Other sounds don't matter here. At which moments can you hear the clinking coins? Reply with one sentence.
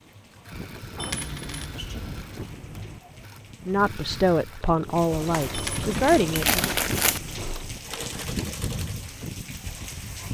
You can hear the clinking coins from 0.9 to 3.0 s and from 5.5 to 7.5 s.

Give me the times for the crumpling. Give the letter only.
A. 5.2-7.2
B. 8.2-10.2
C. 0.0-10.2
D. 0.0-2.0
A.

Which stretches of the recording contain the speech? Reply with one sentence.
You can hear the speech from 3.6 to 6.8 s.